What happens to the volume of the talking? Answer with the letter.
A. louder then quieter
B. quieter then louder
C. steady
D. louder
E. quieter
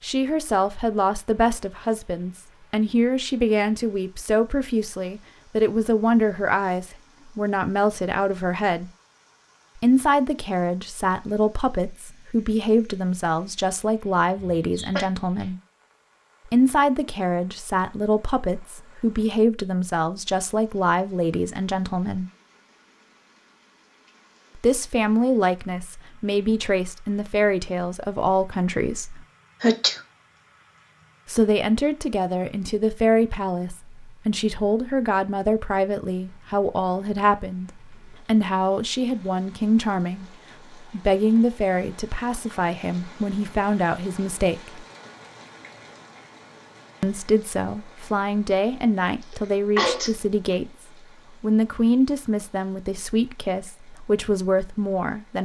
C.